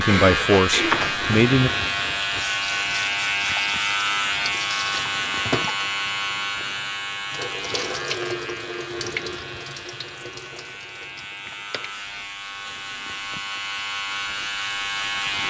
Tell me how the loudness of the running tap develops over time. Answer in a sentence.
The loudness of the running tap goes down.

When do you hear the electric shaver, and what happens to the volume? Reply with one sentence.
You can hear the electric shaver from 0.0 to 15.4 s, getting quieter then louder.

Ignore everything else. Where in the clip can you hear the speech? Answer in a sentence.
You can hear the speech from 0.0 to 1.7 s.